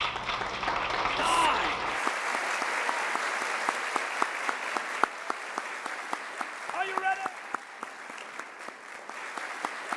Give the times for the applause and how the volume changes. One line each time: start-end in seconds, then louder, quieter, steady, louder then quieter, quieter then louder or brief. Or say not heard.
0.0-9.9 quieter.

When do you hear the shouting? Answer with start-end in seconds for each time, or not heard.
1.1-1.8, 6.7-7.3.